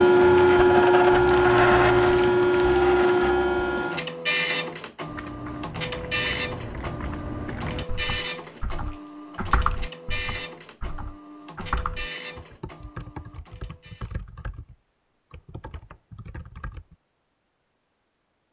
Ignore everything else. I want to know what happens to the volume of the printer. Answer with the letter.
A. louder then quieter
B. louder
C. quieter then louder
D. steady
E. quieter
E.